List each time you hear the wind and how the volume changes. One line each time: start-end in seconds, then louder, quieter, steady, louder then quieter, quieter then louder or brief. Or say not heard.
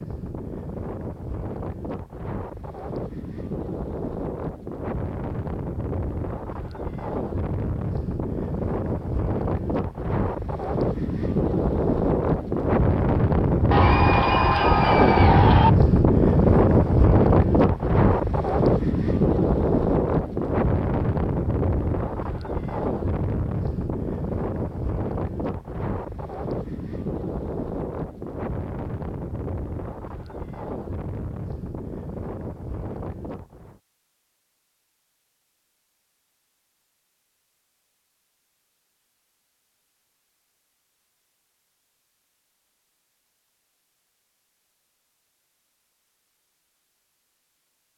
0.0-33.8 louder then quieter.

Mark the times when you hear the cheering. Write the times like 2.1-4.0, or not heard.
13.7-15.7.